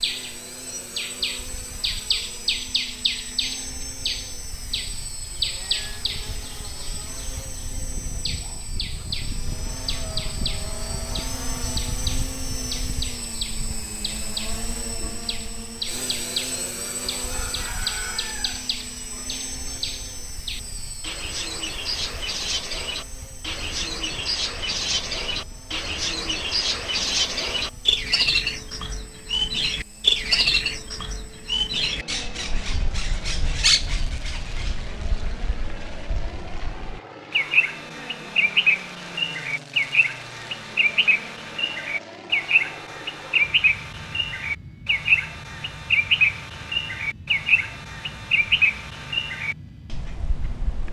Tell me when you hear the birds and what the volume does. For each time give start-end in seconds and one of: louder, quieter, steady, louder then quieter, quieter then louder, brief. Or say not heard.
0.0-50.8 louder.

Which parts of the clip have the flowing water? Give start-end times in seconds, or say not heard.
not heard.